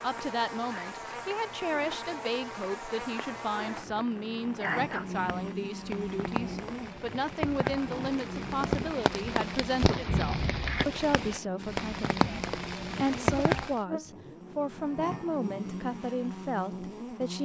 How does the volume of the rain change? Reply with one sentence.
The loudness of the rain goes up.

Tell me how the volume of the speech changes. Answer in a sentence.
The loudness of the speech stays about the same.